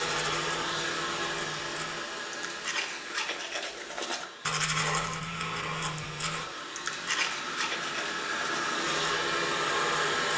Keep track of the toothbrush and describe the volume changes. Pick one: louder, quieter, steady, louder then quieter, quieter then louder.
louder then quieter.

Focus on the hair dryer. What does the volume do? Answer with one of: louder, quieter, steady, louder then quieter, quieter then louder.
quieter then louder.